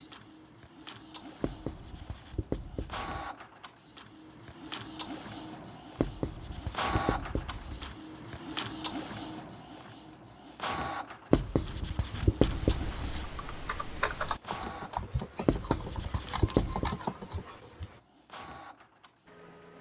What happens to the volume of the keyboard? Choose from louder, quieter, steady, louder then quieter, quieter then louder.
louder.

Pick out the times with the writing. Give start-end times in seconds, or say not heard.
1.4-3.1, 6.0-8.0, 11.3-13.2, 15.4-16.9.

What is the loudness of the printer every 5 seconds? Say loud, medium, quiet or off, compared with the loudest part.
medium, loud, loud, quiet.